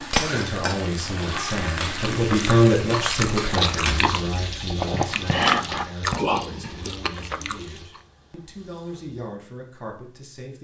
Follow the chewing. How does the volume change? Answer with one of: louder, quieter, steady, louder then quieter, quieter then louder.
louder then quieter.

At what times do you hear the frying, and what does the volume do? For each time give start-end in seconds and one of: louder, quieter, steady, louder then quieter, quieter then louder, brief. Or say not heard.
0.0-9.3 quieter.